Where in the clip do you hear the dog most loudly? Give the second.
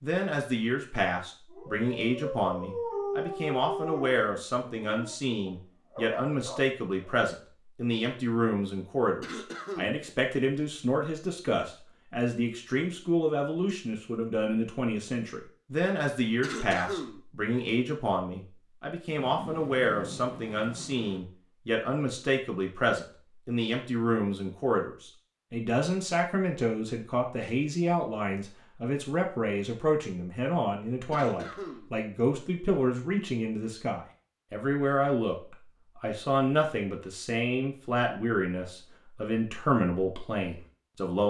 3 s.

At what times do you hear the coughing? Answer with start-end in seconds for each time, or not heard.
9.2-10.0, 16.4-17.2, 31.1-31.9.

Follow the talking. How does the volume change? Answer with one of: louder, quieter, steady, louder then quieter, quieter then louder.
steady.